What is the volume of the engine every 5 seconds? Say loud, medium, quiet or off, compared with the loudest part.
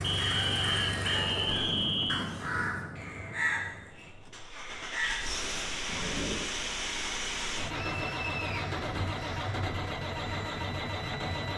medium, loud, loud.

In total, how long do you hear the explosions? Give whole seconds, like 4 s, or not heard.
3 s.